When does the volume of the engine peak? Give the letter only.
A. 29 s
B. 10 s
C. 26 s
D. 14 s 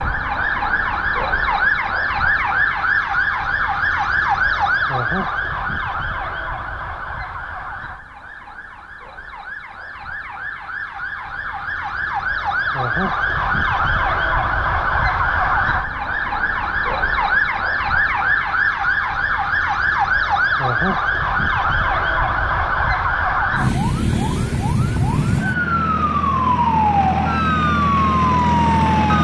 A.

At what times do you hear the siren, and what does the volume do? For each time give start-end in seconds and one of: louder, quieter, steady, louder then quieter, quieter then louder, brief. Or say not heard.
0.0-29.2 quieter then louder.